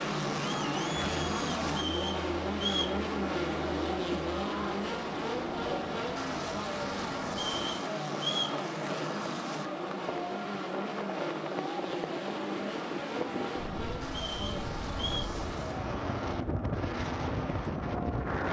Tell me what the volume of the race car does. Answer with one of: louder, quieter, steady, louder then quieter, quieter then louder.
quieter.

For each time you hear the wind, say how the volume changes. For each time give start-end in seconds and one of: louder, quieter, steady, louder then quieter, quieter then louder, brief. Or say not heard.
5.2-18.4 louder.